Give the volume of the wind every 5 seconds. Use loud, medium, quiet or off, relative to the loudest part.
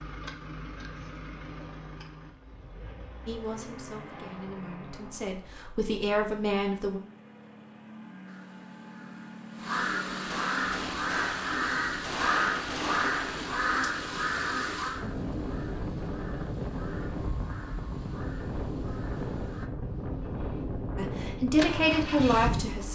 off, off, quiet, loud, loud.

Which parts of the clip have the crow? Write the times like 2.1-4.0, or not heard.
8.2-19.7.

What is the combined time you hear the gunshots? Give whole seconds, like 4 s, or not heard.
3 s.